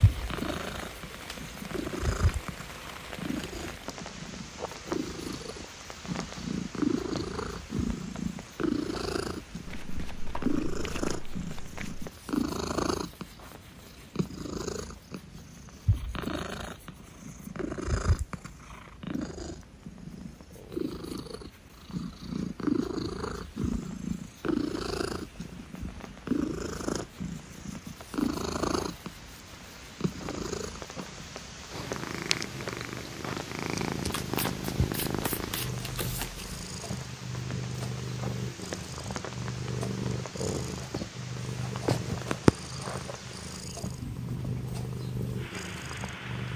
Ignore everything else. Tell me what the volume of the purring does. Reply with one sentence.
The volume of the purring stays about the same.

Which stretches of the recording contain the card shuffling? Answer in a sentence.
The card shuffling can be heard from 9.7 to 12.1 s and from 34.1 to 36.5 s.